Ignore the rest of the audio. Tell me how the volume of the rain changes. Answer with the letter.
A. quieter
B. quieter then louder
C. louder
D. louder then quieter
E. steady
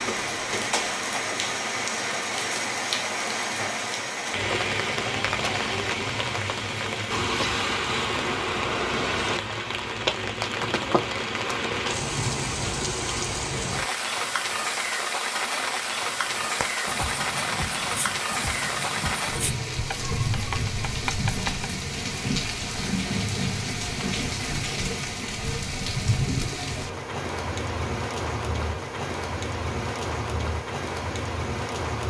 E.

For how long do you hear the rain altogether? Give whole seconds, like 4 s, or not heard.
32 s.